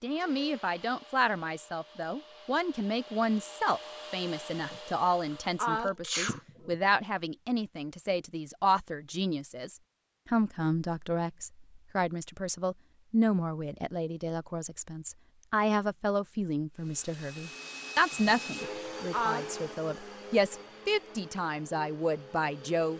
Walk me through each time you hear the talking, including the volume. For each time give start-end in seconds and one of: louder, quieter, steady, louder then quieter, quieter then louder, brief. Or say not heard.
0.0-22.9 steady.